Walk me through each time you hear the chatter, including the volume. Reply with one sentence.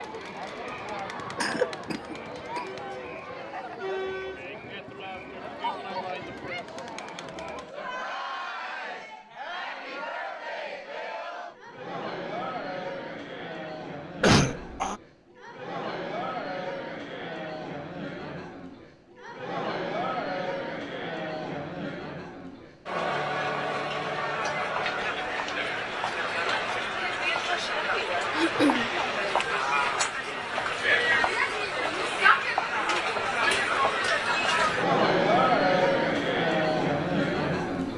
You can hear the chatter from 0.0 to 37.9 s, getting louder.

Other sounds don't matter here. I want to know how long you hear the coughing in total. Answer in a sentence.
The coughing can be heard for 3 seconds in total.